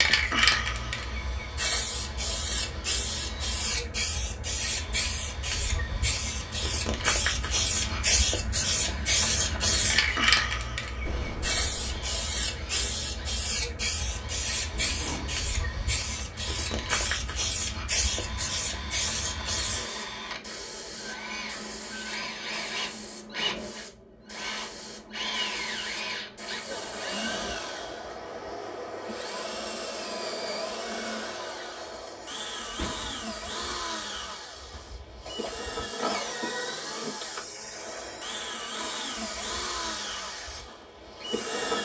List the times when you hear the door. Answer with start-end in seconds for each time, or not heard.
11.1-12.1, 14.7-15.5, 32.3-33.8.